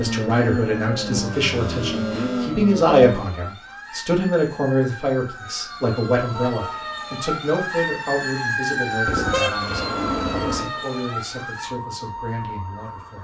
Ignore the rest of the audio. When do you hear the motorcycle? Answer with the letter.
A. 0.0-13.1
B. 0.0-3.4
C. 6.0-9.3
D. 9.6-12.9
B.